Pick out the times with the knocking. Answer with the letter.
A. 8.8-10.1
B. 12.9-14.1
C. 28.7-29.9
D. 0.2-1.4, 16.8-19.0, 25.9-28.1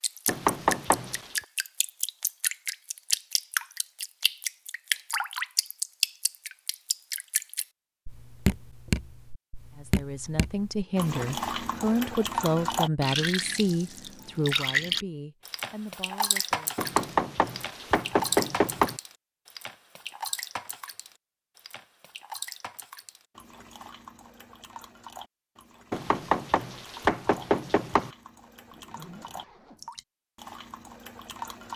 D.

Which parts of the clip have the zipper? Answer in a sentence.
The zipper can be heard from 28.7 to 29.9 s.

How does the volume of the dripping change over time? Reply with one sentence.
The volume of the dripping goes down.